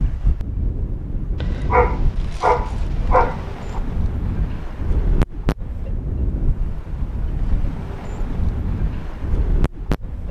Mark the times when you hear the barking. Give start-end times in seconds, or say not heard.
1.4-3.8.